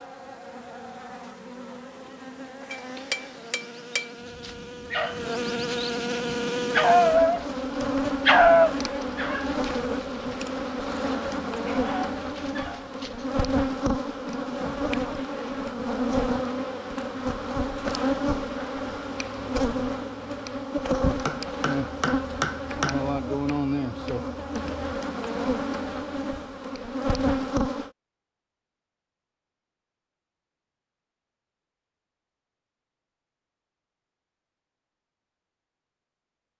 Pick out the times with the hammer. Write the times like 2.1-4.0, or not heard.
2.7-4.2, 21.2-23.1.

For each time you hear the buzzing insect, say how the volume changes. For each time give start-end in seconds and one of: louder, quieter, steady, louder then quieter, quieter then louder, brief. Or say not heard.
0.0-27.9 louder.